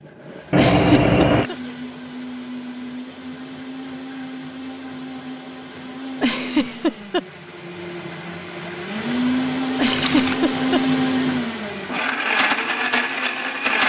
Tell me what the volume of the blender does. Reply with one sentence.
The loudness of the blender goes up.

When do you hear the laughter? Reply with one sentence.
The laughter can be heard from 0.6 to 1.6 s, from 6.2 to 7.2 s and from 9.8 to 11.3 s.